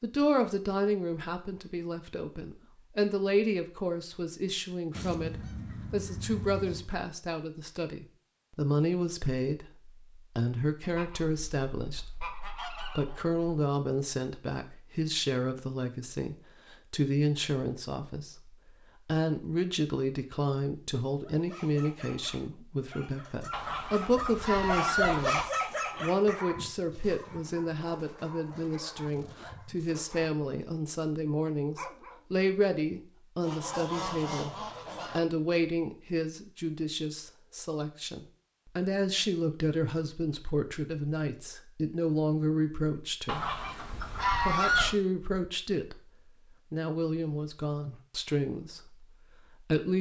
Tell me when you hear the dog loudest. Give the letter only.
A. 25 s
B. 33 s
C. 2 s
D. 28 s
A.